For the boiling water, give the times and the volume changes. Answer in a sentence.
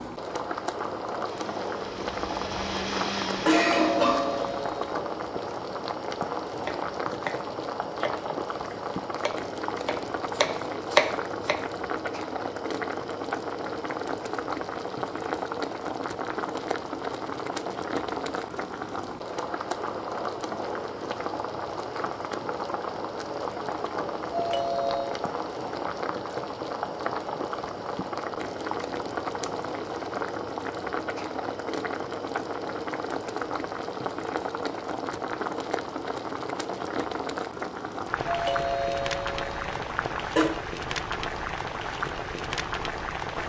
The boiling water can be heard from 0.0 to 43.4 s, at a steady volume.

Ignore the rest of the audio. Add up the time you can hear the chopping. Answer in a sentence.
The chopping can be heard for 5 seconds in total.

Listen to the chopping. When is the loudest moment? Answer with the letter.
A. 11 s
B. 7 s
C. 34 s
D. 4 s
A.